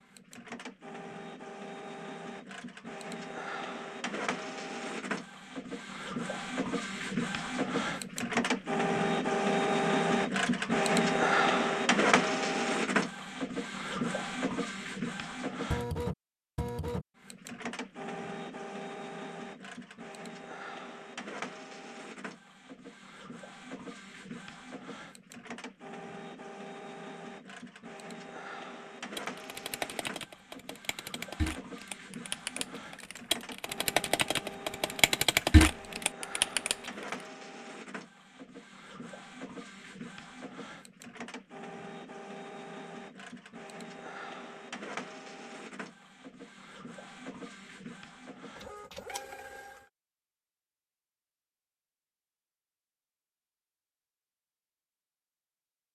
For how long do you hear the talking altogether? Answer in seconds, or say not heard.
not heard.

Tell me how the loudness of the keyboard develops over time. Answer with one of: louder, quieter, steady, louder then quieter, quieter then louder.
louder.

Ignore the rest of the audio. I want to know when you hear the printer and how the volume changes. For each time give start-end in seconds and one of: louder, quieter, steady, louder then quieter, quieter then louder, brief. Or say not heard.
0.0-49.9 quieter.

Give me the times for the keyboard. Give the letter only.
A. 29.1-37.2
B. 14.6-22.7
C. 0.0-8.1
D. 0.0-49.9
A.